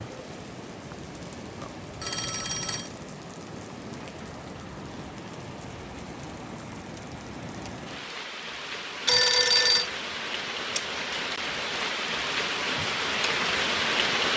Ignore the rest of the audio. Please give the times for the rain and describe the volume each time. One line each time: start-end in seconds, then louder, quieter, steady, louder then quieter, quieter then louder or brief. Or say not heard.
0.0-14.3 louder.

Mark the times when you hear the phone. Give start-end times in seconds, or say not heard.
2.0-2.9, 9.1-9.9.